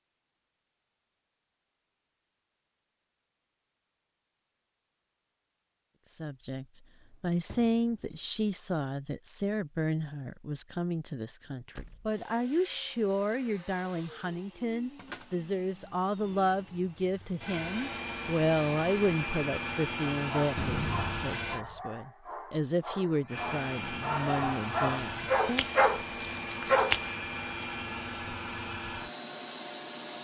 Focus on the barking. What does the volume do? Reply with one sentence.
The volume of the barking goes up.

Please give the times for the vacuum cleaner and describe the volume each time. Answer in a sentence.
The vacuum cleaner can be heard from 12.1 to 21.6 s, getting louder; and from 23.2 to 30.2 s, at a steady volume.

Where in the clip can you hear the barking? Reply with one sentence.
The barking can be heard from 20.1 to 27.6 s.